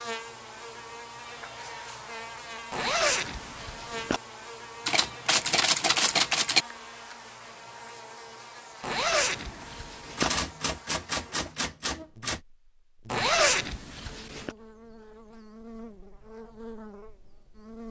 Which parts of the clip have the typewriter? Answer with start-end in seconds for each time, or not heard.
4.8-6.7, 10.2-12.4.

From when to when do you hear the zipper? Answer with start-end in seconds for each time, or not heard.
2.7-4.2, 8.8-10.3, 13.1-14.6.